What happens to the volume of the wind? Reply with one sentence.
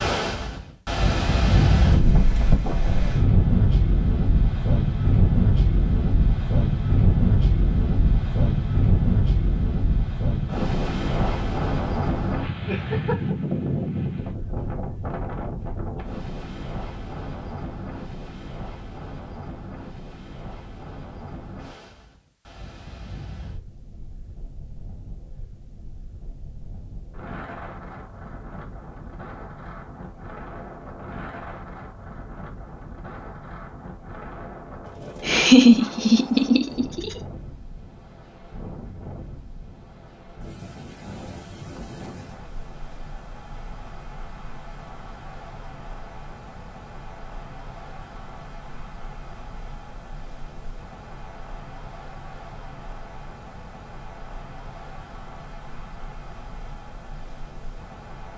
The volume of the wind goes down.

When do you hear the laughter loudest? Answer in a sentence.
The volume of the laughter peaks at 36 seconds.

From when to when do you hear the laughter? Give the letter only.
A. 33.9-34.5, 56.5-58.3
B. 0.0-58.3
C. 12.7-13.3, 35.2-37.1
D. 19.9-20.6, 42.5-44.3
C.